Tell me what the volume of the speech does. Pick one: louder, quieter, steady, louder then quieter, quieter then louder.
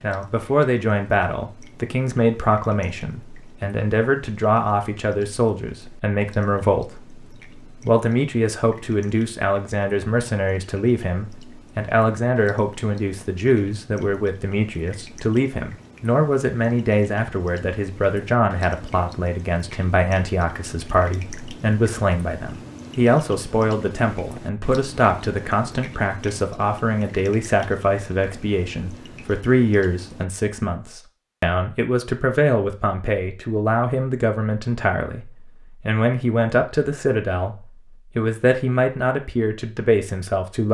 steady.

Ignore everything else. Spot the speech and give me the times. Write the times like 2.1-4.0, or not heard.
0.0-40.6.